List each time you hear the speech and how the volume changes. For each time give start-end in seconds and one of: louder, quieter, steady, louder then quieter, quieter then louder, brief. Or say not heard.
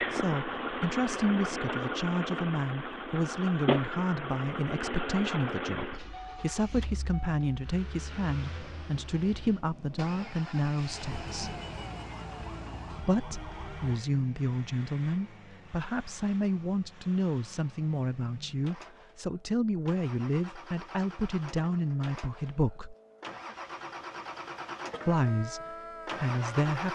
0.0-11.6 steady
13.0-22.9 steady
25.1-26.9 brief.